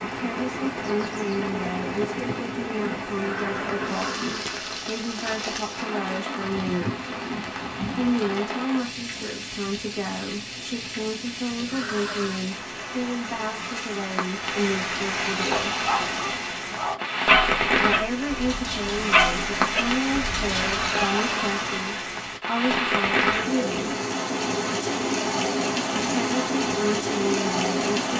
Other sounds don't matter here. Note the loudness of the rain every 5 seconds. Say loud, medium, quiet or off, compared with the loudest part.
medium, medium, medium, loud, loud, loud.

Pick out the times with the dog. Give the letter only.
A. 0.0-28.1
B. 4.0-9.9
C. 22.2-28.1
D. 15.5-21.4
D.